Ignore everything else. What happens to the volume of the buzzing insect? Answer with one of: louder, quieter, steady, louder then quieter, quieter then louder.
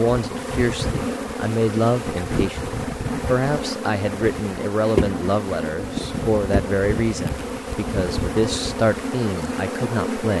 steady.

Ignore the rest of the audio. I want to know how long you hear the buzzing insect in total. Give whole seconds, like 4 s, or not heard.
10 s.